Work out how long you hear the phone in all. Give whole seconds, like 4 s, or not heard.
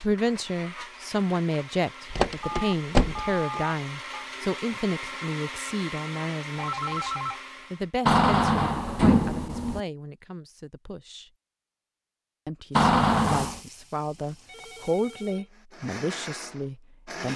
4 s.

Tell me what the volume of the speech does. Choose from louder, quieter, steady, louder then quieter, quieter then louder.
quieter then louder.